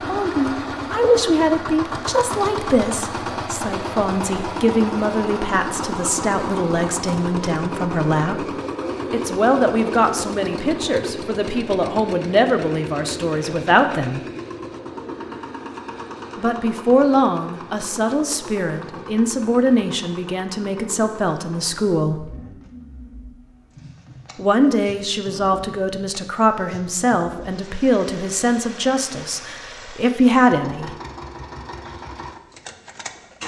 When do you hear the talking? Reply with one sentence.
The talking can be heard from 0.0 to 8.5 s, from 9.1 to 14.2 s, from 16.4 to 22.2 s and from 24.4 to 30.9 s.